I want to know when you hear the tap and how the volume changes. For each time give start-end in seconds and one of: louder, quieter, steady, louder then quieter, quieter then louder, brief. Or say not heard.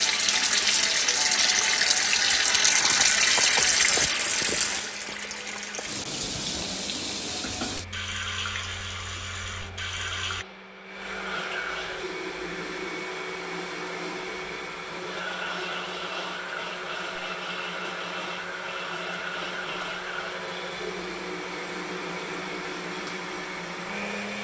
0.0-10.4 quieter.